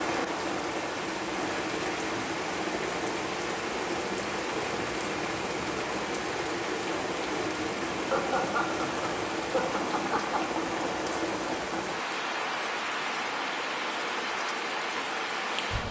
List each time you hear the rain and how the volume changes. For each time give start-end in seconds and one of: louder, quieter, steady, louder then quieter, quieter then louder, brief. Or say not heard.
0.0-15.8 steady.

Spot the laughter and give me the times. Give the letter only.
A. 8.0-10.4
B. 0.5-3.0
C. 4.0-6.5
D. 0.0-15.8
A.